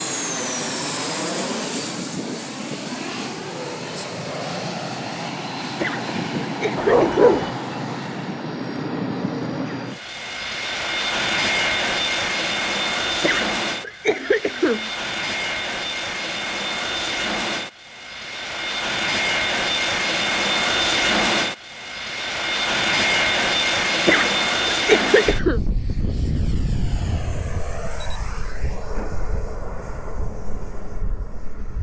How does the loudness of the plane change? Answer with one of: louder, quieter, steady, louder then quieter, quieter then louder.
louder then quieter.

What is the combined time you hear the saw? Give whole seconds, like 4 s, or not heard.
not heard.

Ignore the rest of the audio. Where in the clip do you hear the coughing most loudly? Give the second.
25 s.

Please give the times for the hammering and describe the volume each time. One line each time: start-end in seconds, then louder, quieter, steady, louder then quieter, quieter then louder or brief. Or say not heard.
not heard.